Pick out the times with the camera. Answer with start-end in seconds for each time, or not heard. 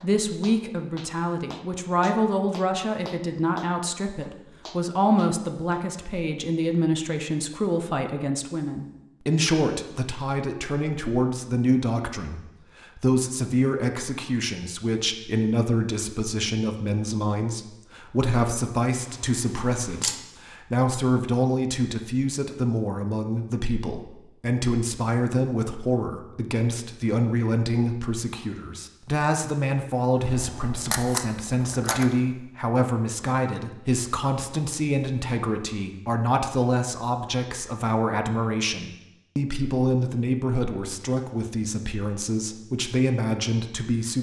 19.0-20.2, 30.1-32.1.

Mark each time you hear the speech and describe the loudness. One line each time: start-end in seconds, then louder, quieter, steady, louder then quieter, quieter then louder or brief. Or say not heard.
0.0-44.1 steady.